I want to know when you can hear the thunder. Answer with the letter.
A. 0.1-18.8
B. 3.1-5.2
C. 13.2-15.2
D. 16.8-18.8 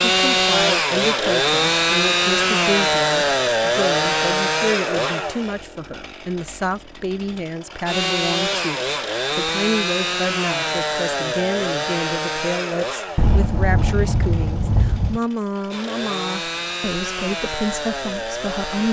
C.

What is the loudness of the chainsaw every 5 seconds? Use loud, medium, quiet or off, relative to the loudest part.
loud, medium, medium, medium.